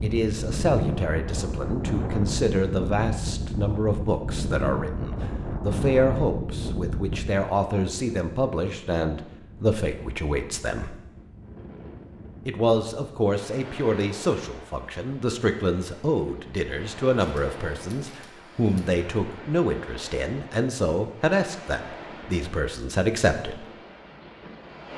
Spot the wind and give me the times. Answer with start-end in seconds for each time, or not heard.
0.0-24.9.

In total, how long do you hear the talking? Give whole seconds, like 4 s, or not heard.
22 s.